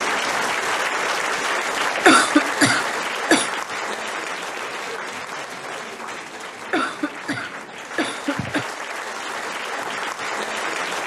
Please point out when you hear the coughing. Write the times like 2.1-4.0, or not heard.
2.0-3.5, 6.7-8.7.